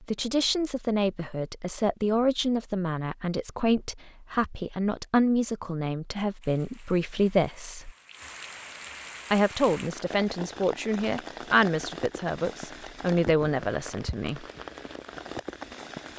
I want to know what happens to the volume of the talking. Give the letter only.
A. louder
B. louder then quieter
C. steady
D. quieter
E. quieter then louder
C.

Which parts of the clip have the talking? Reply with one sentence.
You can hear the talking from 0.1 to 7.9 s and from 9.3 to 14.4 s.